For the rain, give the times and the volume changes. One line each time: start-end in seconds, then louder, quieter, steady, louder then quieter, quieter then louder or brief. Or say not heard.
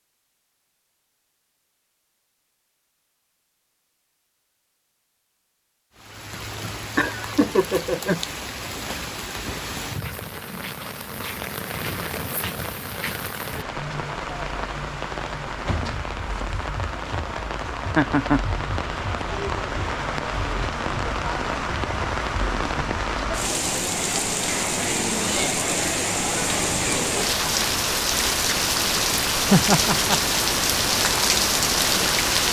6.0-32.4 louder.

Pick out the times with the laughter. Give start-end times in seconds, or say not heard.
7.0-8.2, 17.9-18.4, 29.4-30.2.